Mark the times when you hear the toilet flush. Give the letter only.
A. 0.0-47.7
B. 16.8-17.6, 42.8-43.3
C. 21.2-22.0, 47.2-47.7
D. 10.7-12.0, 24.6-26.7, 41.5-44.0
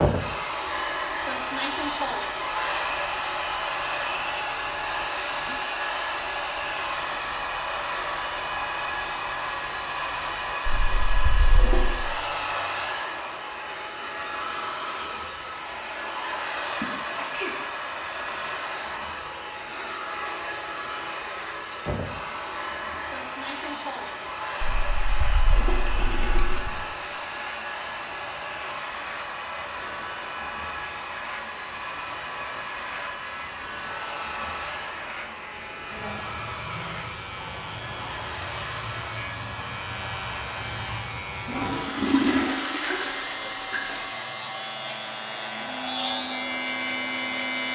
D.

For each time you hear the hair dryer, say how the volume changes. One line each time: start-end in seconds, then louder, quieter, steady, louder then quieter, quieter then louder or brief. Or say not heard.
0.0-47.7 quieter.